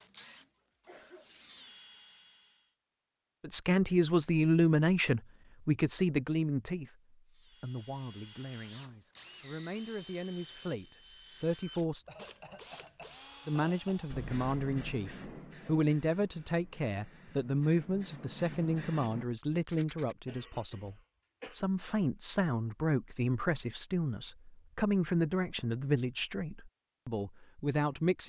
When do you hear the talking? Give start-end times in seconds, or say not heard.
3.4-12.1, 13.4-28.2.